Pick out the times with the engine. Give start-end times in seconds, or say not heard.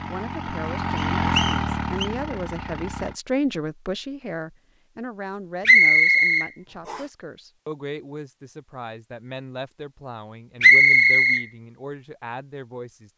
0.0-3.2.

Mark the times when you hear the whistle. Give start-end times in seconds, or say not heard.
0.9-2.0, 5.7-7.0, 10.6-11.4.